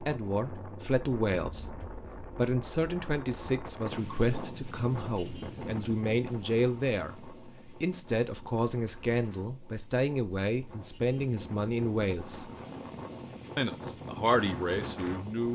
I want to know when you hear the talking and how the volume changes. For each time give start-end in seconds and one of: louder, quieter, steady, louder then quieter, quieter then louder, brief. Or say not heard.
0.0-12.5 steady
13.6-15.5 brief.